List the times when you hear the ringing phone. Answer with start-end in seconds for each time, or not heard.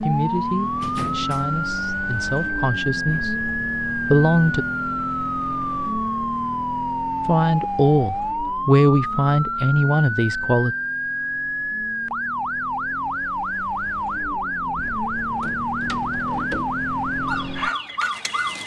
not heard.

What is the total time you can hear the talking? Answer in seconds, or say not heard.
8 s.